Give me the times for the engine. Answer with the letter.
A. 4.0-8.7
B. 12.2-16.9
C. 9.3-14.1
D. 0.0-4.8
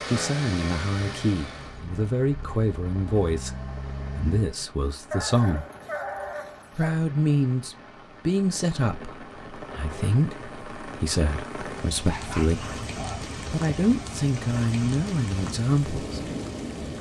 D.